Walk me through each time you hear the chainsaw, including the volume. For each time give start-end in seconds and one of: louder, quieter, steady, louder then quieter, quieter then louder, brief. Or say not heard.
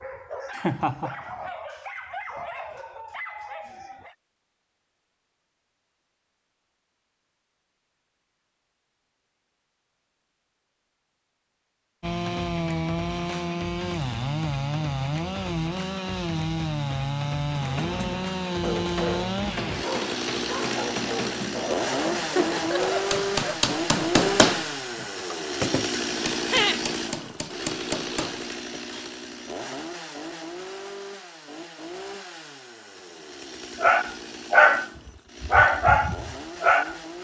12.0-37.1 quieter.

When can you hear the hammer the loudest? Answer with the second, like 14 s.
24 s.